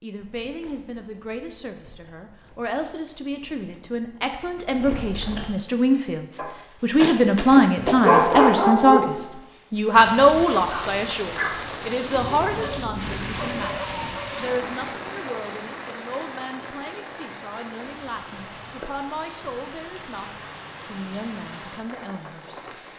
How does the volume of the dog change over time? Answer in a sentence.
The volume of the dog goes up, then down.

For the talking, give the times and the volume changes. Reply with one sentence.
The talking can be heard from 0.0 to 22.7 s, getting louder then quieter.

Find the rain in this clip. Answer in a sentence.
The rain can be heard from 9.9 to 22.9 s.